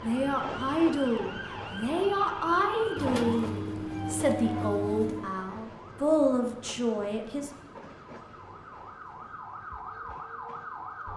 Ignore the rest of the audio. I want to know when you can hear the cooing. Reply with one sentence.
The cooing can be heard from 3.0 to 5.3 s.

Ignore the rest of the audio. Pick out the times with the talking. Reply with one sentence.
You can hear the talking from 0.0 to 7.5 s.